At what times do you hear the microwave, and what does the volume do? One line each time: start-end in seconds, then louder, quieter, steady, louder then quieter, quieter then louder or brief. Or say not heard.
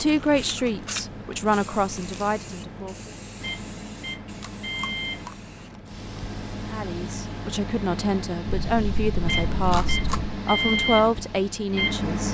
0.0-12.2 louder.